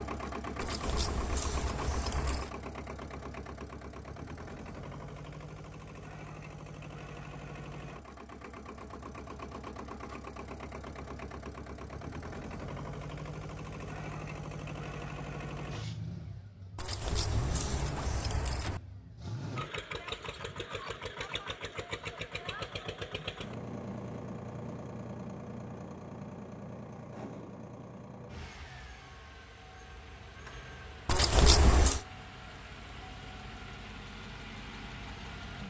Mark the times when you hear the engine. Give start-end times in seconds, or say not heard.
0.0-35.6.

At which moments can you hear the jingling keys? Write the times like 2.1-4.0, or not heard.
0.6-2.5, 16.8-18.8, 31.1-32.0.